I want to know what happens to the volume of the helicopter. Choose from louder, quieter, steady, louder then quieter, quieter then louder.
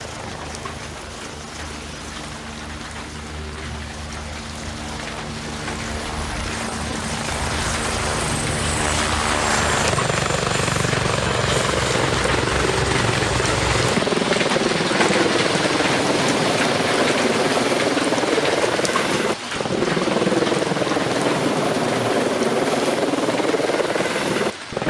louder.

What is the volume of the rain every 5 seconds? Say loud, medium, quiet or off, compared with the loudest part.
quiet, medium, loud, loud, medium.